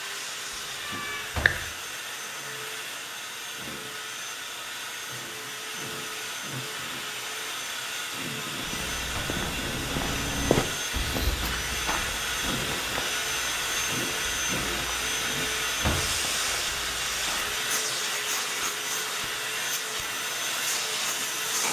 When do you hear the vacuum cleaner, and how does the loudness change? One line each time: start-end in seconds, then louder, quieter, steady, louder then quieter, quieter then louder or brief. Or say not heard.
0.0-21.6 louder.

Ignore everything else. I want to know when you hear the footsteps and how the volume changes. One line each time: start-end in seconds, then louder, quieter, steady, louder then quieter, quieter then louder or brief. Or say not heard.
8.6-17.5 quieter.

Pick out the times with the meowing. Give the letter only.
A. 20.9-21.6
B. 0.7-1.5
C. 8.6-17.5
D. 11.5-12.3
B.